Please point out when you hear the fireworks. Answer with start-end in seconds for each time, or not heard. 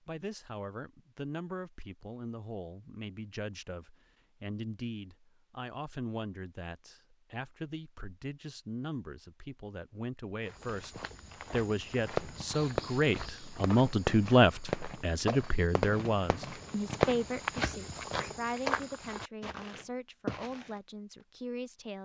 12.2-17.6.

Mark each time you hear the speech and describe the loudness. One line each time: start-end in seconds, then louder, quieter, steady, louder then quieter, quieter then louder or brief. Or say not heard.
0.1-22.0 louder then quieter.